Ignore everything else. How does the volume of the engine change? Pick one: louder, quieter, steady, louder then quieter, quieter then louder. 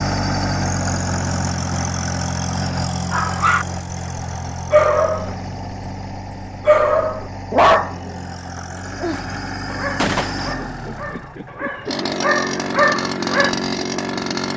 quieter then louder.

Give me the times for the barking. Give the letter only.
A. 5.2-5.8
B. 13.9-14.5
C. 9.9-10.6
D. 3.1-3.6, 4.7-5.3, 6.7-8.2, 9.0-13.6
D.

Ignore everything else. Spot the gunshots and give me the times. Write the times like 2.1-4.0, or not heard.
9.9-10.6.